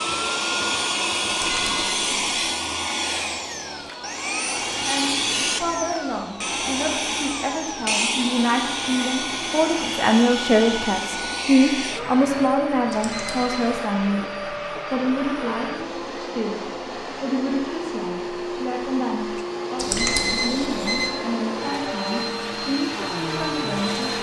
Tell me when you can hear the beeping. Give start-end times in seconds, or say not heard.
1.2-2.5, 12.9-13.9, 19.8-21.1.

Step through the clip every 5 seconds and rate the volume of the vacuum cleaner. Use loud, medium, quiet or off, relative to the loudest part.
loud, loud, loud, medium, loud.